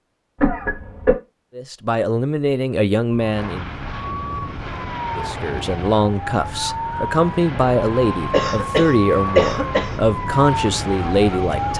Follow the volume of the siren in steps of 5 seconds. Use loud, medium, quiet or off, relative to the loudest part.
medium, loud, loud.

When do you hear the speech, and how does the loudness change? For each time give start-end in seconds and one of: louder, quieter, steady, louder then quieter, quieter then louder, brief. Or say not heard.
1.6-3.7 brief
5.2-11.7 steady.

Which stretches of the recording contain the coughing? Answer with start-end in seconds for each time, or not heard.
0.4-1.1, 8.3-10.0.